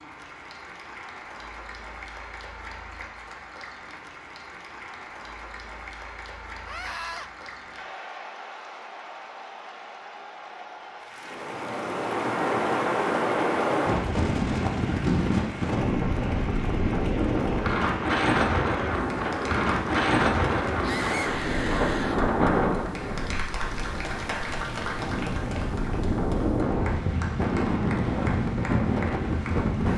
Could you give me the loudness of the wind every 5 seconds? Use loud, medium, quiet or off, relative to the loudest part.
off, off, loud, loud, loud, loud.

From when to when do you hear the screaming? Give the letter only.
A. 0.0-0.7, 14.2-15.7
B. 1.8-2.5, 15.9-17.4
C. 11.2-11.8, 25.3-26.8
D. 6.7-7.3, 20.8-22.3
D.